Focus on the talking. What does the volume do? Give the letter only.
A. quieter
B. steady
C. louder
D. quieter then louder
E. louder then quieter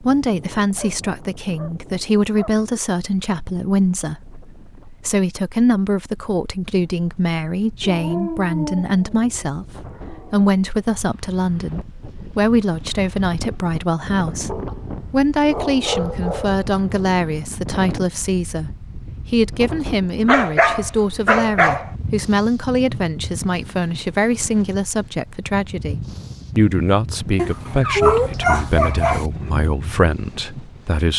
B.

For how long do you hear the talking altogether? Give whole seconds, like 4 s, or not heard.
31 s.